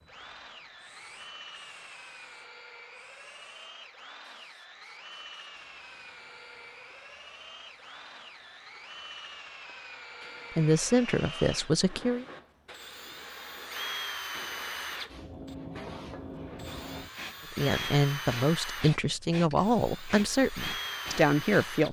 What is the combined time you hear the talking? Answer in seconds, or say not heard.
6 s.